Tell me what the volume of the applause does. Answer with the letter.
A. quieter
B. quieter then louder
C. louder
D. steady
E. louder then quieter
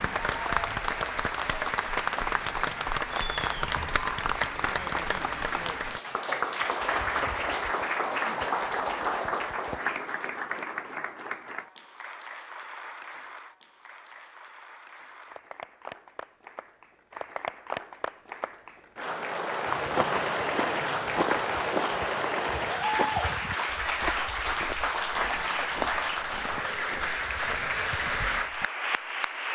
B.